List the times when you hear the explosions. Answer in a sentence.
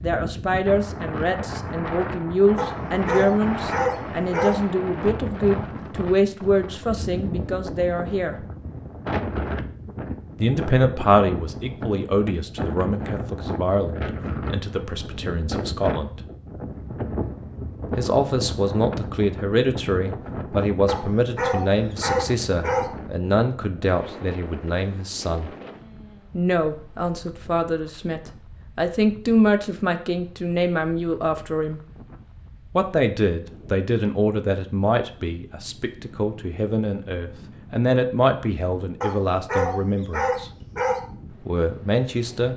The explosions can't be heard in this clip.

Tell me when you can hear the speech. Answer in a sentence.
The speech can be heard from 0.0 to 8.3 s, from 10.4 to 16.2 s, from 17.9 to 25.5 s, from 26.3 to 31.8 s, from 32.8 to 40.5 s and from 41.3 to 42.5 s.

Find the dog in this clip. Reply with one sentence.
The dog can be heard from 2.5 to 4.5 s, from 20.9 to 22.9 s and from 39.0 to 41.0 s.